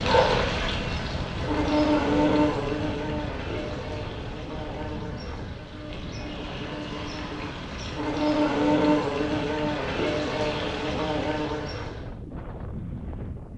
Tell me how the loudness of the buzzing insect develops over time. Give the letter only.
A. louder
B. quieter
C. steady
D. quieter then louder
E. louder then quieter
D.